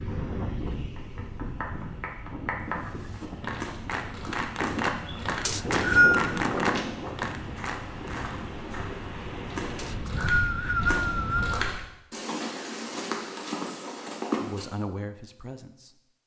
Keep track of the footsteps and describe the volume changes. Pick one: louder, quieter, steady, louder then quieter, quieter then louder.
louder.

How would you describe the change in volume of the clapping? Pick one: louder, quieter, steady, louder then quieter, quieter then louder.
louder.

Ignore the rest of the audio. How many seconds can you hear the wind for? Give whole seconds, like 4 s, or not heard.
12 s.